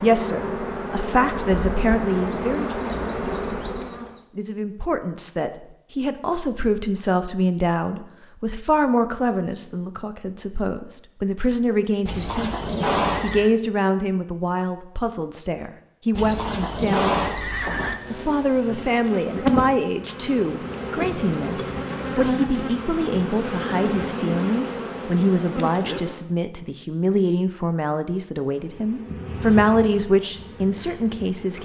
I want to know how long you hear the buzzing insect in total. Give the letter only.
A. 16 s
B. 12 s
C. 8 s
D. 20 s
A.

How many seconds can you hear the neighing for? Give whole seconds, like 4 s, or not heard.
3 s.